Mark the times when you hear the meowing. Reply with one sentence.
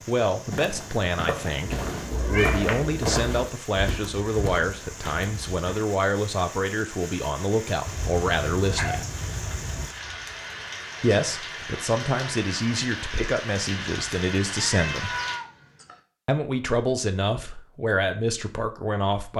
The meowing can be heard from 1.6 to 3.5 s, from 7.8 to 9.8 s and from 14.6 to 16.0 s.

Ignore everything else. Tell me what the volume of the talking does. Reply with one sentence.
The volume of the talking stays about the same.